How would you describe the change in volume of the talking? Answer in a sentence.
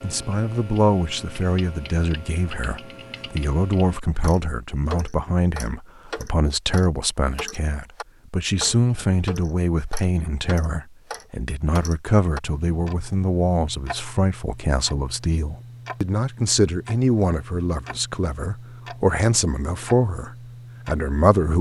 The loudness of the talking stays about the same.